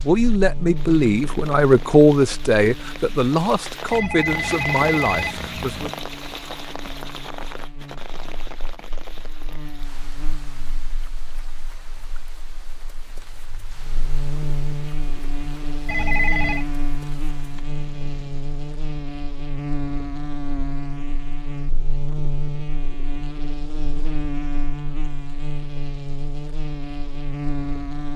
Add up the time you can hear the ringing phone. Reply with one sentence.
You can hear the ringing phone for 3 seconds altogether.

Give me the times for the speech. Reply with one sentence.
You can hear the speech from 0.0 to 5.9 s.